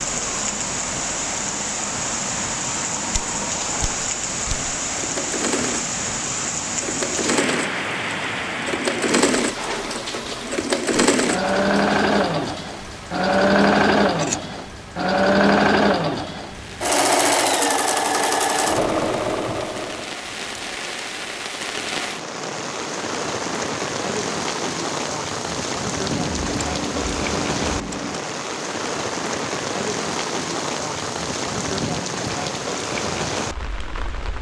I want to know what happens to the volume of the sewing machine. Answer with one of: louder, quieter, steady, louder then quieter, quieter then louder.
louder.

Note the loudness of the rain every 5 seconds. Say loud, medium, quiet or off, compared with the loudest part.
loud, loud, medium, medium, loud, loud, loud.